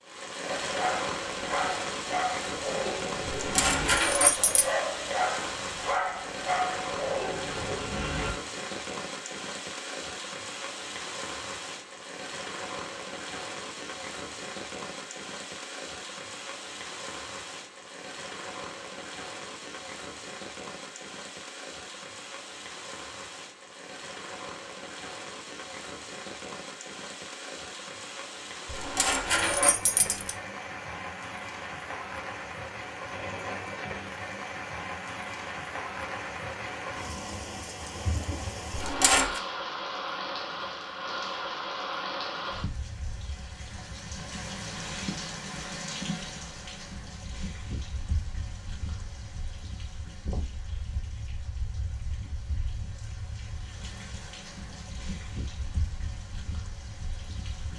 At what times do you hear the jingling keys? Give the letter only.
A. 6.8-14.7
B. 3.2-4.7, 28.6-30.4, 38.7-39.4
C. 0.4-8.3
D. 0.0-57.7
B.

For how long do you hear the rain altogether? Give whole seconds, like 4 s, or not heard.
58 s.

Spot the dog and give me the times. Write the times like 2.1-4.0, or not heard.
0.4-8.3.